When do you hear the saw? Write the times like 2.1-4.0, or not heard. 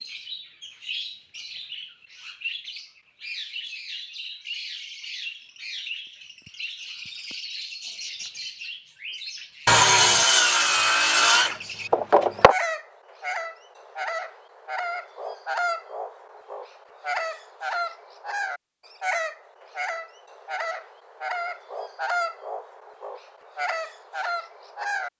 9.7-12.6.